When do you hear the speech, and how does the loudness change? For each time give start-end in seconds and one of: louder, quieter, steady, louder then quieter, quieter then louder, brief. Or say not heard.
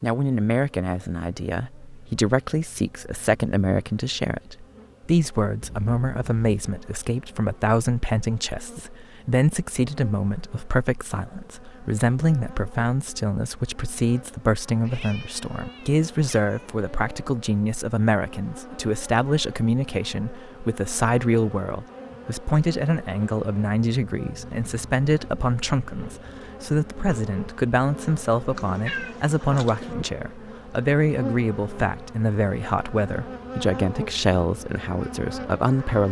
0.0-36.0 steady.